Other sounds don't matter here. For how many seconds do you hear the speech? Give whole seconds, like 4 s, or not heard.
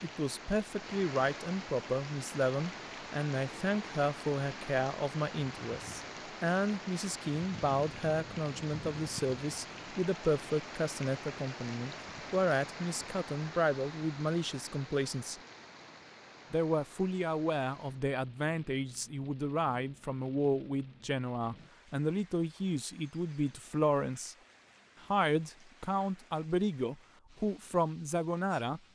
27 s.